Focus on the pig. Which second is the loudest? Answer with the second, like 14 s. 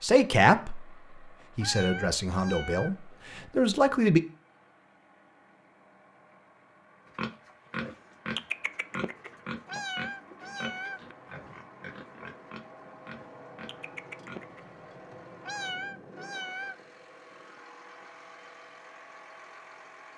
8 s.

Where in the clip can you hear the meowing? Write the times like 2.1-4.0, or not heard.
1.6-3.5, 9.7-11.6, 15.4-16.8.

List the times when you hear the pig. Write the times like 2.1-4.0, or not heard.
7.2-14.7.